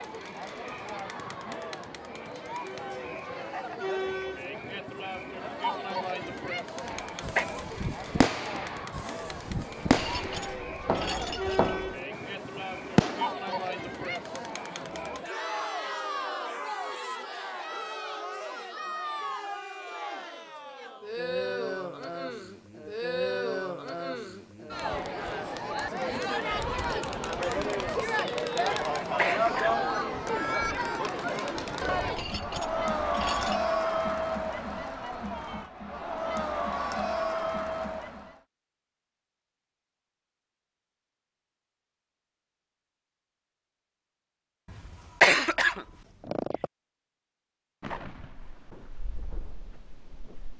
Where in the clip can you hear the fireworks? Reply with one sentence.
You can hear the fireworks from 6.8 to 13.3 s and from 47.8 to 50.5 s.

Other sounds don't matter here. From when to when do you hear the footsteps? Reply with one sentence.
The footsteps can't be heard in this clip.